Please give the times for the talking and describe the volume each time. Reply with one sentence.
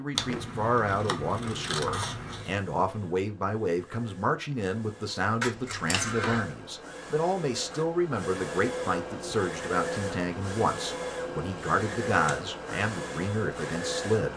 You can hear the talking from 0.0 to 14.3 s, at a steady volume.